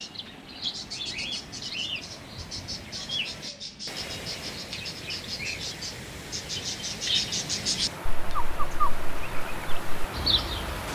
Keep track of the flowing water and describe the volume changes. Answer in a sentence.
The volume of the flowing water goes up.